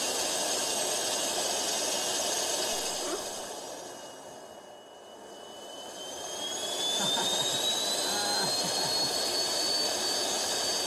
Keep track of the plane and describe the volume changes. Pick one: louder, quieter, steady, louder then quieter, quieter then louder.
quieter then louder.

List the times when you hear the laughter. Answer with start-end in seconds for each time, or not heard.
2.9-3.4, 6.8-9.2.